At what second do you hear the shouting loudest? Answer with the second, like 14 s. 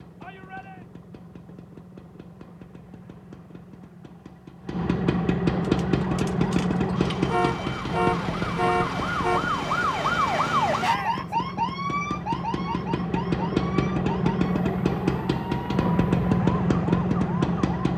11 s.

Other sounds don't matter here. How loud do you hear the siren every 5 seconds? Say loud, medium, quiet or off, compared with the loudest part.
off, loud, loud, medium.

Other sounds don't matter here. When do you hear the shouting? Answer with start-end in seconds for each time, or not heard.
0.2-0.8, 10.8-11.3.